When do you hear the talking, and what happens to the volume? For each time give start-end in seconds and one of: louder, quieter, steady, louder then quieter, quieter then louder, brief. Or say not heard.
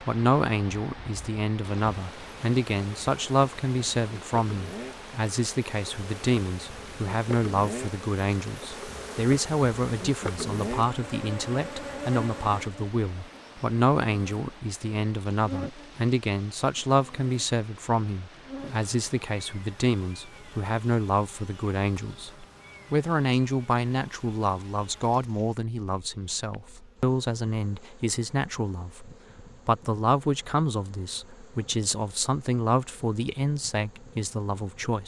0.0-35.0 steady.